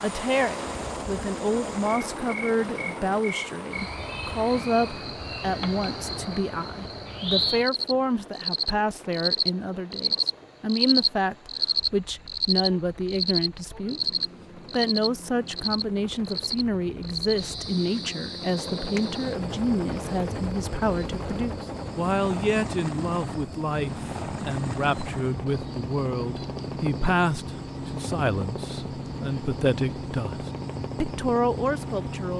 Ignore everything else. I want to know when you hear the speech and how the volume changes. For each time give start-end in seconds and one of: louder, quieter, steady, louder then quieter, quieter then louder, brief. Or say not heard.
0.0-32.3 steady.